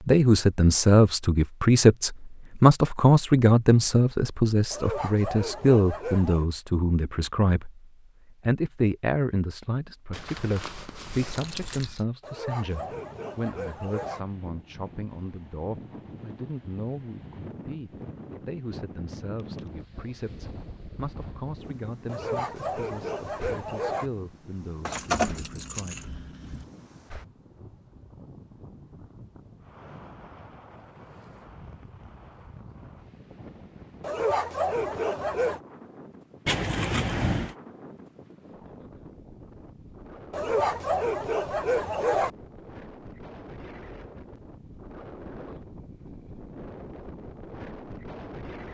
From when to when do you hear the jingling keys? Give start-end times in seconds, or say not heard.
10.1-12.1, 24.9-26.6, 36.5-37.5.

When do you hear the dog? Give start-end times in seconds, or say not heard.
4.7-6.5, 12.2-14.2, 22.1-24.1, 34.0-35.6, 40.3-42.3.